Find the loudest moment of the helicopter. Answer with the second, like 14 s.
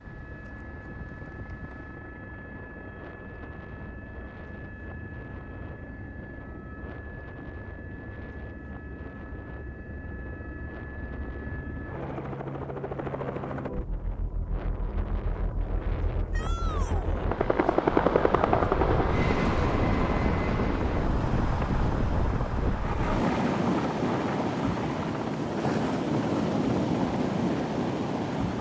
18 s.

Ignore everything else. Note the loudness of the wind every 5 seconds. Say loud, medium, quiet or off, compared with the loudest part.
quiet, quiet, quiet, medium, loud, loud.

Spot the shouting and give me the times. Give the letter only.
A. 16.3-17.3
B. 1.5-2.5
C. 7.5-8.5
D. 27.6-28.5
A.